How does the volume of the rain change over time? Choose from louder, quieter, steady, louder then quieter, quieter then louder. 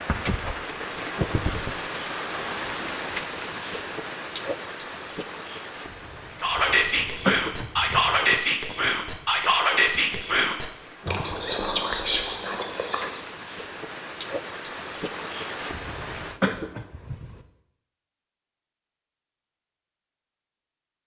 quieter then louder.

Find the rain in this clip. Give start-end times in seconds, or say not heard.
0.0-16.4.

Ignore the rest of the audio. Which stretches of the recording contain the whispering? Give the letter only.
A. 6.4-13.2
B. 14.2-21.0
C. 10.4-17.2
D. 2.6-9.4
A.